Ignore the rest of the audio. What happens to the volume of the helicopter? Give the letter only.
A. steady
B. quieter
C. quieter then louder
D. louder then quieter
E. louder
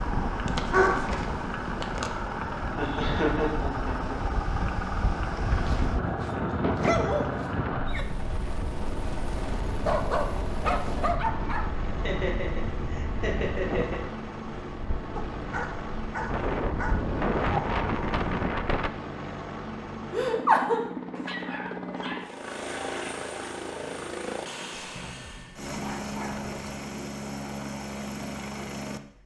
A.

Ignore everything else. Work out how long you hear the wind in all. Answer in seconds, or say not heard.
19 s.